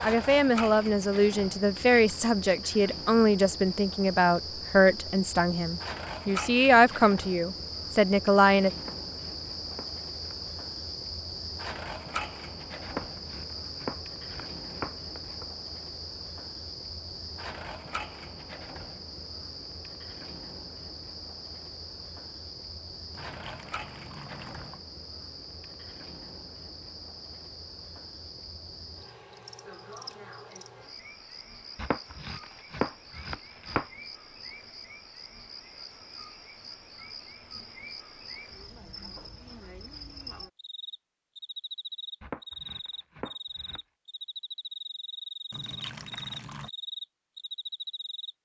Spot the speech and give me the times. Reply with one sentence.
You can hear the speech from 0.0 to 8.7 s.